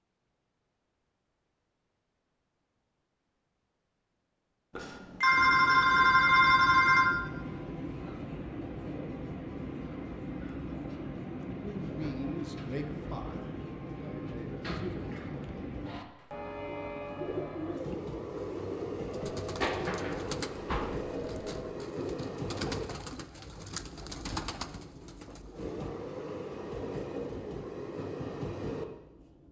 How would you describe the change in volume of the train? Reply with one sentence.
The volume of the train stays about the same.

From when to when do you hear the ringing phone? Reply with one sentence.
You can hear the ringing phone from 4.8 to 7.2 s and from 19.1 to 21.7 s.